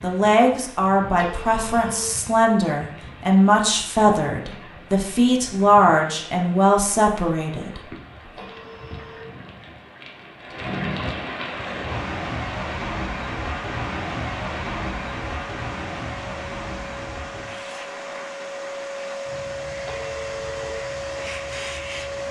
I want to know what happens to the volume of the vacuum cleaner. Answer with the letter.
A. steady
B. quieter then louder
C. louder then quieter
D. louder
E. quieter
D.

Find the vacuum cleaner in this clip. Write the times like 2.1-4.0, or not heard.
11.6-22.2.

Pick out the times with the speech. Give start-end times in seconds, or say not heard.
0.0-7.8.